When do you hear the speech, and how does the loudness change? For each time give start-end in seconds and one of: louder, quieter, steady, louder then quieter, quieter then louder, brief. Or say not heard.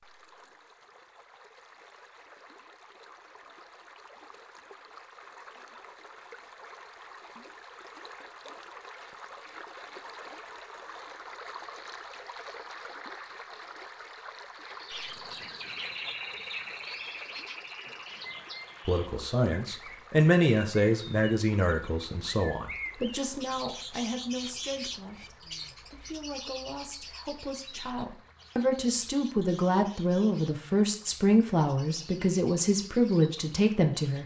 18.9-34.2 quieter then louder.